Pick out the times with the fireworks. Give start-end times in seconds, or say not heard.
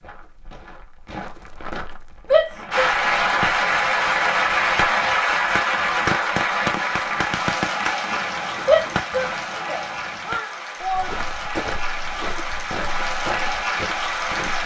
2.5-10.4.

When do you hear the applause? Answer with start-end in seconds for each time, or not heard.
2.7-14.6.